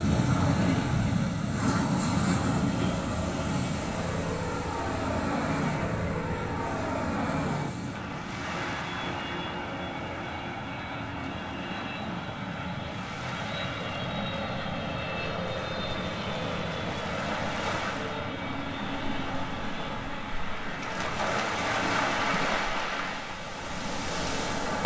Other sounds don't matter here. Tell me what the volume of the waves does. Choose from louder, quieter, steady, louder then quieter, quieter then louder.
quieter then louder.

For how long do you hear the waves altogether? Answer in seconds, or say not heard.
25 s.